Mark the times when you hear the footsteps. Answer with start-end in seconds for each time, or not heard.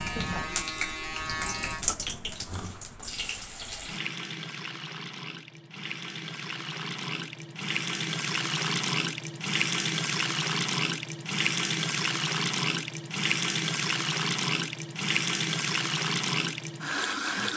not heard.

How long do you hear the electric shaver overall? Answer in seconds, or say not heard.
2 s.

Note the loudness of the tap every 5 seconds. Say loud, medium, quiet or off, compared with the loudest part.
medium, loud, loud, loud.